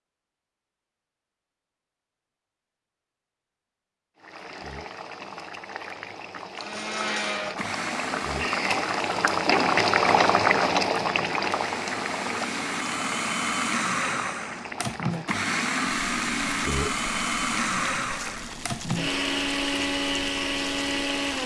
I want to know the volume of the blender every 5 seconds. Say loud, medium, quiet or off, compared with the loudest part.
off, medium, loud, loud, loud.